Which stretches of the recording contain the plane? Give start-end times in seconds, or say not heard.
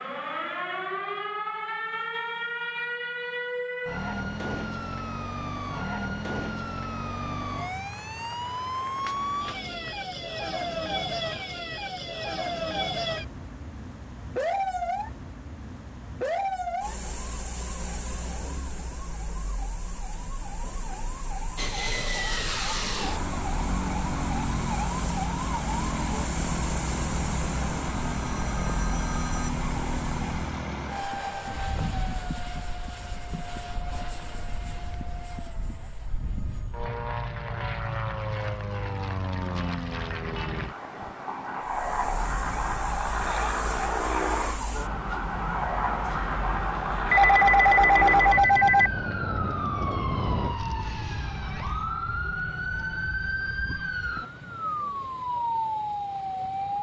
21.6-50.5.